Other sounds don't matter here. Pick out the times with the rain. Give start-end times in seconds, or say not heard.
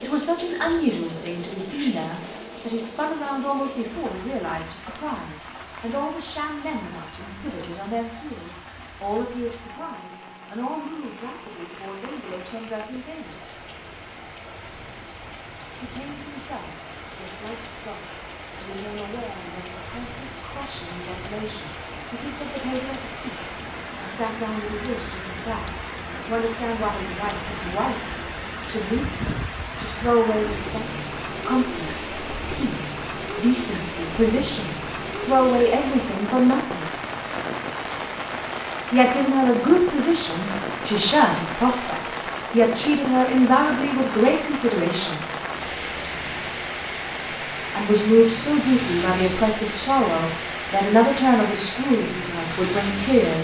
0.0-53.3.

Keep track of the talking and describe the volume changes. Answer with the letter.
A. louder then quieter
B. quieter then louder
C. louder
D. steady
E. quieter
B.